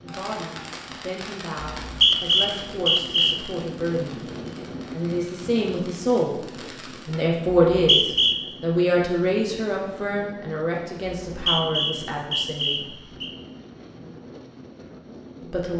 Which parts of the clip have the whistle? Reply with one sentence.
You can hear the whistle from 1.6 to 3.4 s, from 7.7 to 8.3 s and from 11.2 to 13.3 s.